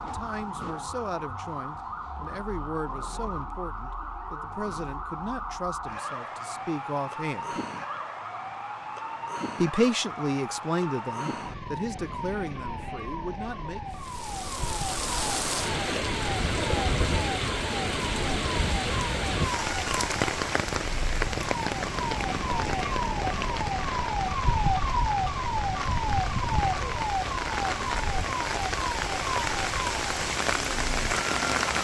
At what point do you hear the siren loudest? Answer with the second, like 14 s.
25 s.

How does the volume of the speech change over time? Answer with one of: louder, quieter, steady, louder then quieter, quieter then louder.
louder then quieter.